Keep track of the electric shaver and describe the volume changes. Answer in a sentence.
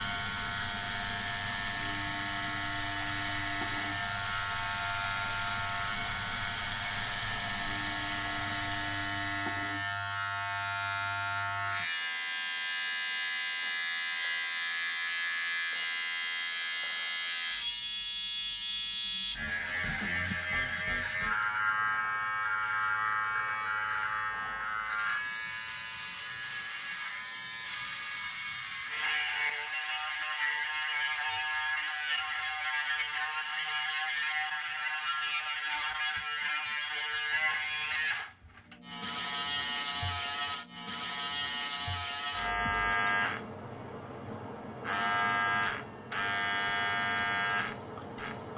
The loudness of the electric shaver stays about the same.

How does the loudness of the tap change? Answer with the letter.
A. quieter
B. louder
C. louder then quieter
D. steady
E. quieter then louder
D.